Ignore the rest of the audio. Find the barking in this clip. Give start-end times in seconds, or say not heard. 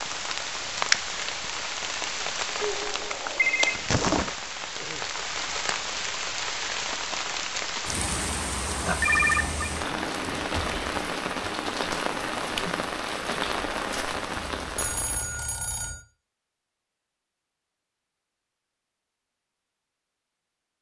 not heard.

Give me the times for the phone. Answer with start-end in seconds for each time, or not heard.
2.6-3.8, 8.8-9.7, 14.5-16.0.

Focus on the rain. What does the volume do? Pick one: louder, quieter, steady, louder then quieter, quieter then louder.
steady.